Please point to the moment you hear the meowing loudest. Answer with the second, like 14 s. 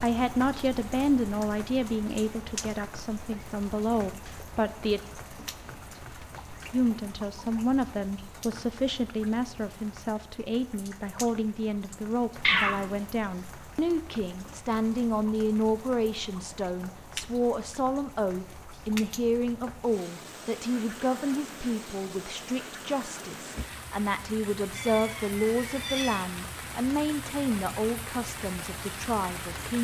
13 s.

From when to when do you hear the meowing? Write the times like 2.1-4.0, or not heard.
12.4-13.0, 24.8-26.2.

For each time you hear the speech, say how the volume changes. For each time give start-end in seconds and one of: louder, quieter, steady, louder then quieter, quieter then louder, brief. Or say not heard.
0.0-5.0 quieter then louder
6.7-29.8 steady.